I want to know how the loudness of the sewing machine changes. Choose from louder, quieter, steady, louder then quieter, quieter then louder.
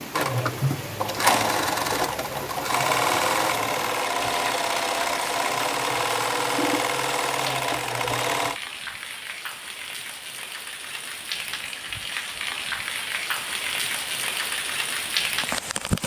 steady.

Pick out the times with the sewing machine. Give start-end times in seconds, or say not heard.
0.0-8.6.